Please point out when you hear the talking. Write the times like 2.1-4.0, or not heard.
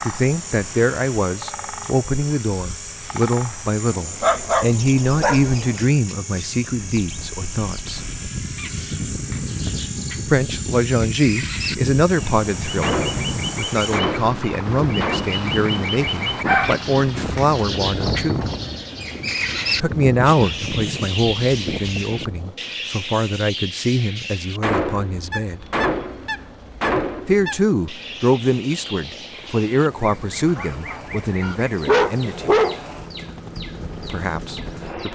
0.0-8.0, 10.2-18.5, 19.8-25.6, 27.2-32.6, 34.0-35.1.